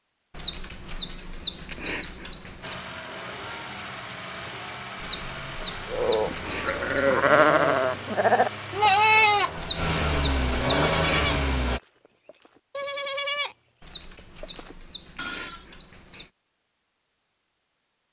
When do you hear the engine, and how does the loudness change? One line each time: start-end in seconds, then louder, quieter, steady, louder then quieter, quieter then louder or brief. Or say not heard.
2.6-11.8 louder.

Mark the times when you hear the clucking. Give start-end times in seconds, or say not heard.
0.3-2.8, 5.0-7.1, 9.6-11.3, 13.8-16.3.